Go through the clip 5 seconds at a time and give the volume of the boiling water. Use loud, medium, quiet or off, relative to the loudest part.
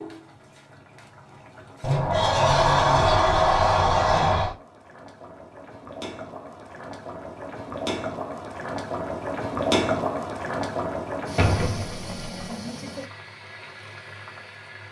quiet, loud, loud.